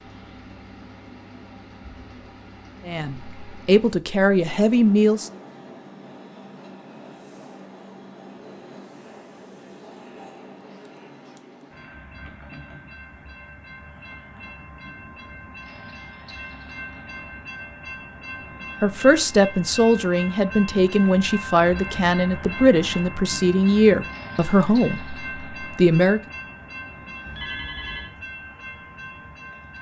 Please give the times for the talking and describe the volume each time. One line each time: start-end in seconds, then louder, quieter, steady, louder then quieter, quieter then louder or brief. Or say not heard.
2.9-5.3 brief
18.8-26.2 steady.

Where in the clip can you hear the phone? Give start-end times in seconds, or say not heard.
27.2-28.1.